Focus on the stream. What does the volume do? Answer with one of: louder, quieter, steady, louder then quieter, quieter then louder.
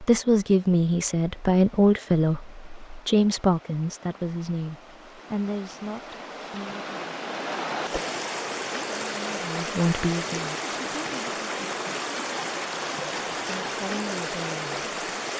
louder.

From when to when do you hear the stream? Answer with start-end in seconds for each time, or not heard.
0.0-15.3.